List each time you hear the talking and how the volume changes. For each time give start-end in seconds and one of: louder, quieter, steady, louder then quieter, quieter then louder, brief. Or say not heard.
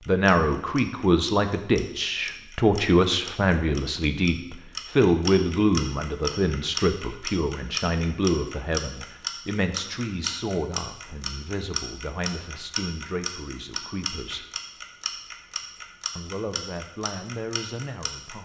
0.1-14.4 quieter
16.1-18.4 brief.